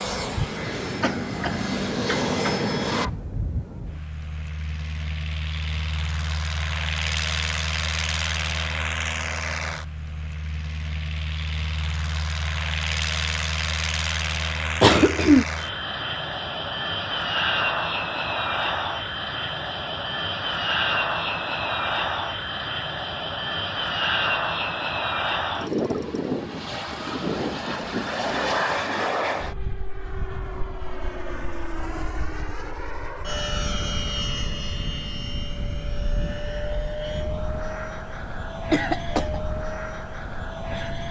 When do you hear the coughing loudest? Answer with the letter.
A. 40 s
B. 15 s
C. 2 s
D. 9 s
B.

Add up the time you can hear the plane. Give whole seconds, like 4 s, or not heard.
41 s.